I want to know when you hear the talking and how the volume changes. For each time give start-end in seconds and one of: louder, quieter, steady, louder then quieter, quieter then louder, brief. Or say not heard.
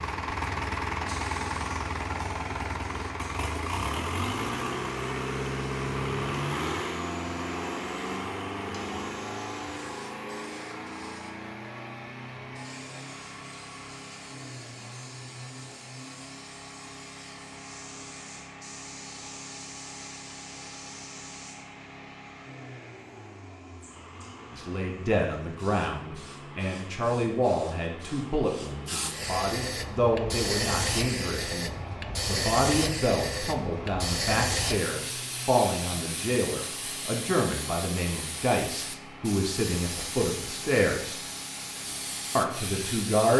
24.5-41.2 steady
42.4-43.3 brief.